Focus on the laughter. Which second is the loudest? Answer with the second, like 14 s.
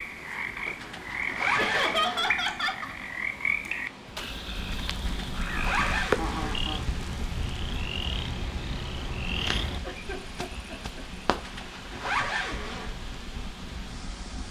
2 s.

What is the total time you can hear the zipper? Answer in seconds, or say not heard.
5 s.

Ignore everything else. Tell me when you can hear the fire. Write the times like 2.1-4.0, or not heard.
4.2-14.4.